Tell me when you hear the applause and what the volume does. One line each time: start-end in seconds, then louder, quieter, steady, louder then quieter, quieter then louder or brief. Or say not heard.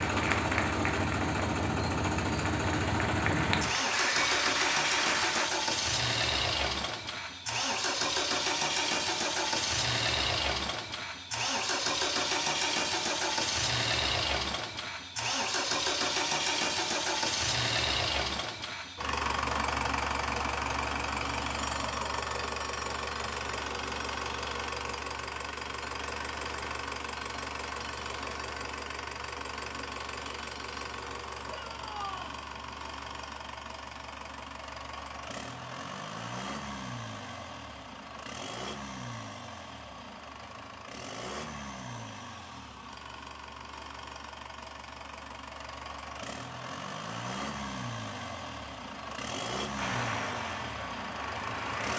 0.0-5.5 quieter then louder
49.8-51.9 brief.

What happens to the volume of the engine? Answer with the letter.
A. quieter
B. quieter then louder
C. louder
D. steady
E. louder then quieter
A.